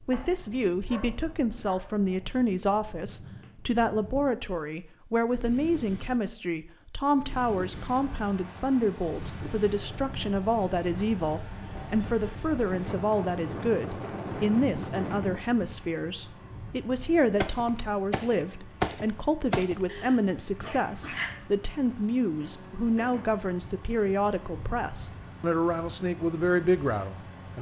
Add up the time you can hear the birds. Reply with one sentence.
You can't hear the birds here.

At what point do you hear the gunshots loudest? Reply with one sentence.
The volume of the gunshots peaks at 19 seconds.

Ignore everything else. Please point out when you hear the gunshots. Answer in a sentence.
You can hear the gunshots from 17.4 to 19.9 s.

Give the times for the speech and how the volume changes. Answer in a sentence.
The speech can be heard from 0.0 to 27.5 s, at a steady volume.